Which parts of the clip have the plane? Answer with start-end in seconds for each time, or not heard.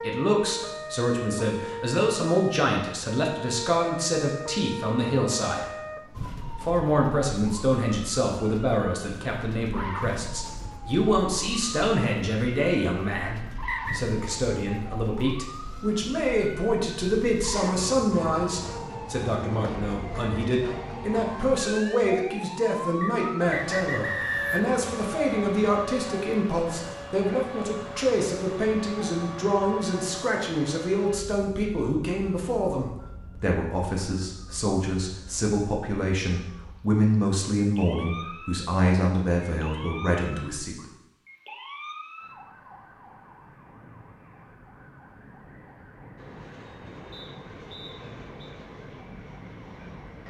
46.1-50.2.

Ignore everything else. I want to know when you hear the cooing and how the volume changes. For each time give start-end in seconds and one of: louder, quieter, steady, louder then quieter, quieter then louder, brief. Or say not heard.
not heard.